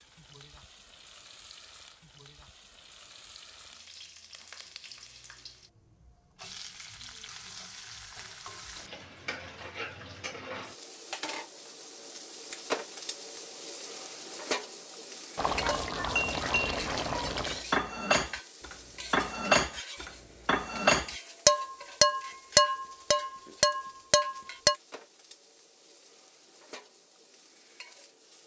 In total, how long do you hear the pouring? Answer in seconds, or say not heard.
2 s.